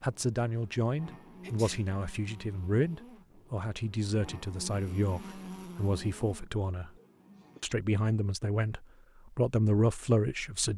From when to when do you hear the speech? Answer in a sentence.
You can hear the speech from 0.0 to 6.9 s and from 7.6 to 10.7 s.